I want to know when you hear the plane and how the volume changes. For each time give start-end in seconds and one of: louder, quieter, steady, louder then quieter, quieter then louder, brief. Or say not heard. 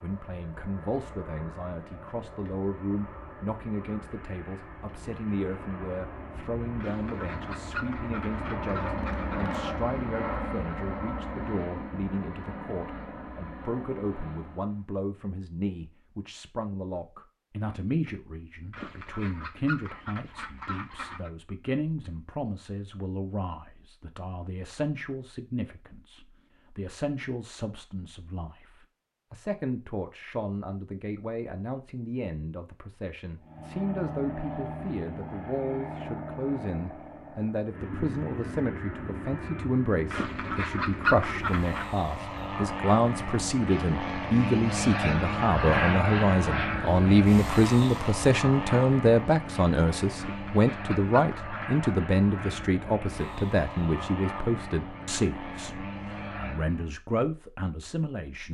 0.0-14.8 louder then quieter
33.4-57.0 louder then quieter.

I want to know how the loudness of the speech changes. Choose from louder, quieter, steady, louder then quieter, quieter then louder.
louder.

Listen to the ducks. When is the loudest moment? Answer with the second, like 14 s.
41 s.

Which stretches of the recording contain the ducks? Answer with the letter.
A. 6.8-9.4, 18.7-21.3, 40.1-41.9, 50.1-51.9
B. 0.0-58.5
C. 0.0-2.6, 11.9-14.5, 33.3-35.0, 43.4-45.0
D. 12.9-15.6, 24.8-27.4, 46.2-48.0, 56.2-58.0
A.